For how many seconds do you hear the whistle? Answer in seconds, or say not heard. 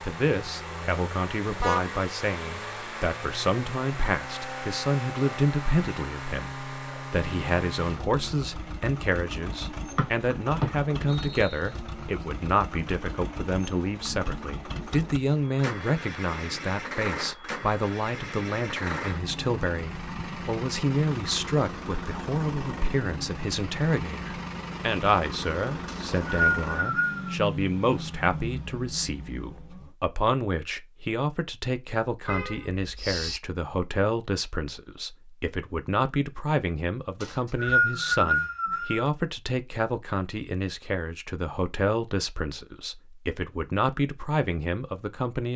5 s.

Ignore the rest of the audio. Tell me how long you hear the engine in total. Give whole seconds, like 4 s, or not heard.
30 s.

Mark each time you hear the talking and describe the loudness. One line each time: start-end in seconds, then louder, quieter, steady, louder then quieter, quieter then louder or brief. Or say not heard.
0.0-45.5 steady.